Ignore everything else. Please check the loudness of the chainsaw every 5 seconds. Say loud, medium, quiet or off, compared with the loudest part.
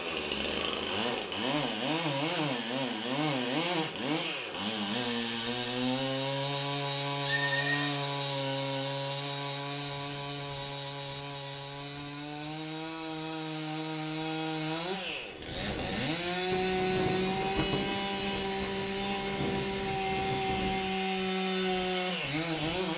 loud, loud, medium, loud, loud.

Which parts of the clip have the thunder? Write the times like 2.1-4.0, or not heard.
16.5-20.9.